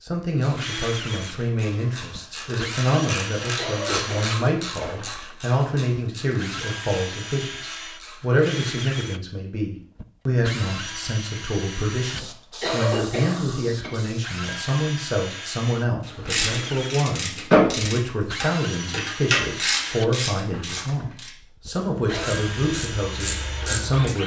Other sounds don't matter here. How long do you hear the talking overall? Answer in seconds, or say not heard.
24 s.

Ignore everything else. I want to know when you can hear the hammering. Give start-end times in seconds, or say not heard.
not heard.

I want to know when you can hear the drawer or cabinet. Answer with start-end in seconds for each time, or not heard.
not heard.